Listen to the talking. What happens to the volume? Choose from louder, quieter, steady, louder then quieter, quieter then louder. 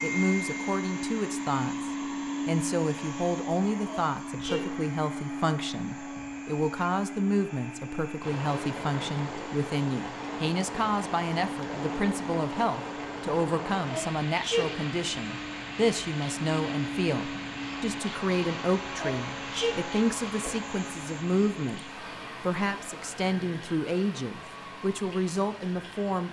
steady.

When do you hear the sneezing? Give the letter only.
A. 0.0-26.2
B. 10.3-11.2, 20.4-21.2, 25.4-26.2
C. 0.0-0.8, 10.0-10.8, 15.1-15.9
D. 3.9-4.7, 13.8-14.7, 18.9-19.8
D.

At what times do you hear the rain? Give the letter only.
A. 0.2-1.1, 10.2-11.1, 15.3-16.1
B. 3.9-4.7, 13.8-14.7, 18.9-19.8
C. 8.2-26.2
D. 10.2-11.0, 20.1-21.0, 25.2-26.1
C.